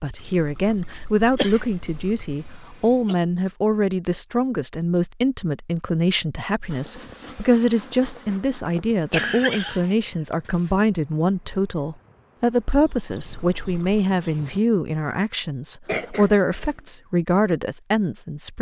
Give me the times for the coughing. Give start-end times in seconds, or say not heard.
1.4-3.1, 8.9-10.7, 15.8-16.8.